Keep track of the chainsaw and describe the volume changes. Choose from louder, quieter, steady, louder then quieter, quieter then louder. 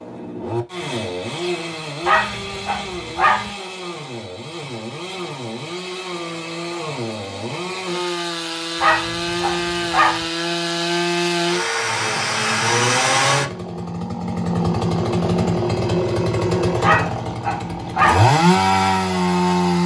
louder.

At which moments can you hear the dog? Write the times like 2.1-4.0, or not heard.
2.0-3.5, 8.8-10.2, 16.8-18.3.